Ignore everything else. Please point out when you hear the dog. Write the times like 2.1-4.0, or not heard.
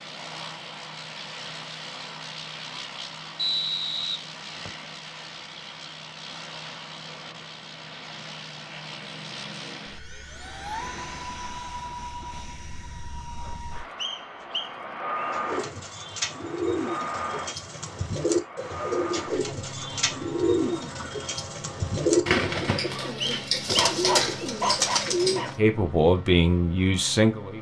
23.6-25.6.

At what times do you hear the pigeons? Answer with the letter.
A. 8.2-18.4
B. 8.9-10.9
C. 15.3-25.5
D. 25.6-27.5
C.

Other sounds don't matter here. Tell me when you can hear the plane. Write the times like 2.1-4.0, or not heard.
0.0-27.5.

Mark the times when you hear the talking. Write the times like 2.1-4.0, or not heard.
25.6-27.5.